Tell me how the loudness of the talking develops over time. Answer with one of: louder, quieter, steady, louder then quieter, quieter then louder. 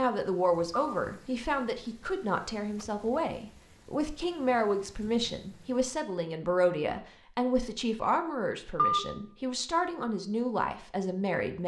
steady.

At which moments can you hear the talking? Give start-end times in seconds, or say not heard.
0.0-11.6.